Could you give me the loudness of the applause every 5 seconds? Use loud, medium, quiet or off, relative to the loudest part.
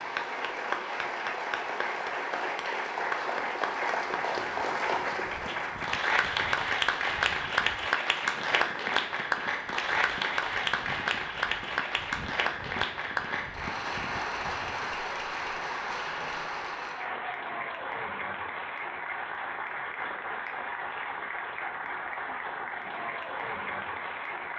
loud, loud, loud, medium, medium.